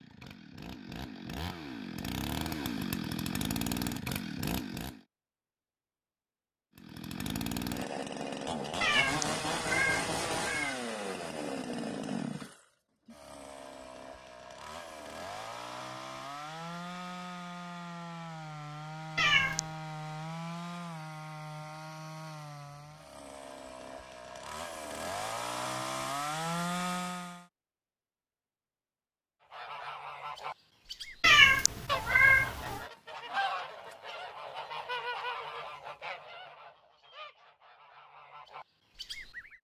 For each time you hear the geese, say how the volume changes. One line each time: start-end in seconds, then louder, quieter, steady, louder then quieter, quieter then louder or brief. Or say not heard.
29.5-39.5 louder then quieter.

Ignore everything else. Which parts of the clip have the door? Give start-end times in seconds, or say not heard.
not heard.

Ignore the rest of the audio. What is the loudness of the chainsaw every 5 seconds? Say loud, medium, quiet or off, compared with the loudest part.
loud, loud, loud, medium, medium, loud, off, off.